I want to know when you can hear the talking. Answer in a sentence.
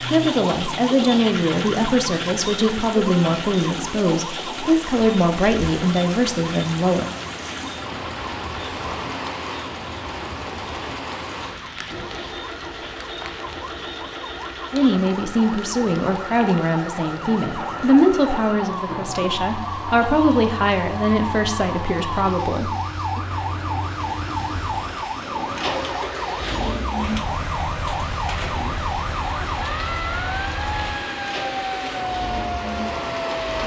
You can hear the talking from 0.1 to 7.1 s and from 14.7 to 23.2 s.